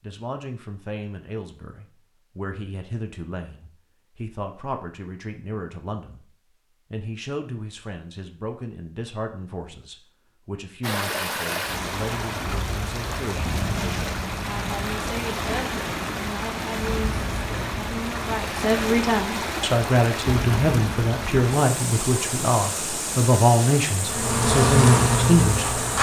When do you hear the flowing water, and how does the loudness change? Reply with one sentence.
The flowing water can be heard from 10.8 to 25.9 s, at a steady volume.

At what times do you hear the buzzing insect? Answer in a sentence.
The buzzing insect can be heard from 24.1 to 25.9 s.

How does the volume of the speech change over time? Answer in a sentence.
The volume of the speech goes up.